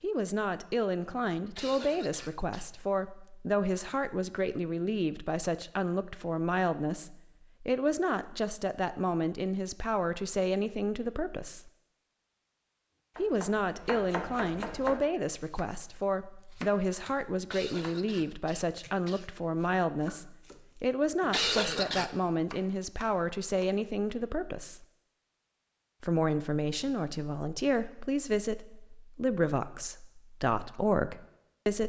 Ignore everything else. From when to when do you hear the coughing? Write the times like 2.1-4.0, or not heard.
1.6-2.7, 17.5-19.3, 21.3-22.1.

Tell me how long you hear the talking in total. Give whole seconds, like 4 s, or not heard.
29 s.